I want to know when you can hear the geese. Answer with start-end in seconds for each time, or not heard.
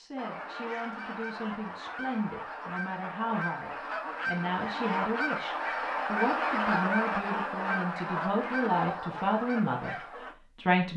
0.1-10.3.